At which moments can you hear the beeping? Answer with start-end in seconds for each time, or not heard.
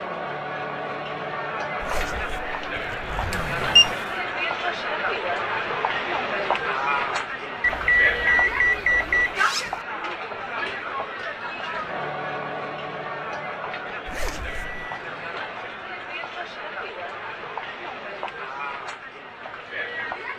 3.3-4.0, 7.6-9.4, 14.2-15.3.